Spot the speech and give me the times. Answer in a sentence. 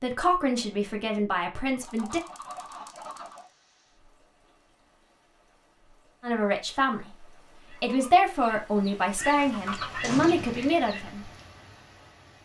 The speech can be heard from 0.0 to 2.2 s, from 6.2 to 7.2 s and from 7.8 to 11.3 s.